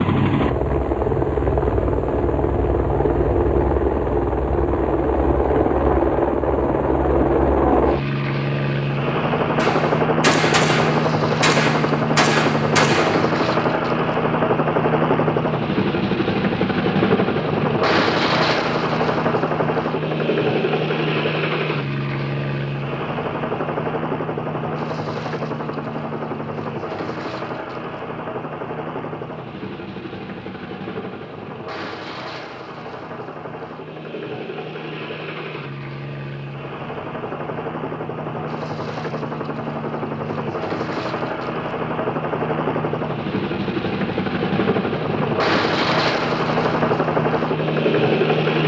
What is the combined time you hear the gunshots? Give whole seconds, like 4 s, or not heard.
4 s.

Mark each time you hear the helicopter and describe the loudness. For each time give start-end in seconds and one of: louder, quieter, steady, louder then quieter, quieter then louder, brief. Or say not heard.
0.0-48.6 quieter then louder.